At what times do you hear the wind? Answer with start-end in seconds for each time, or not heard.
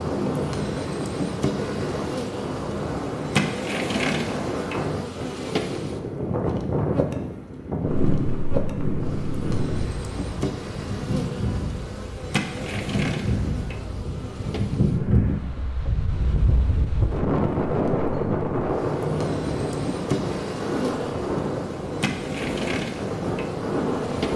0.0-24.3.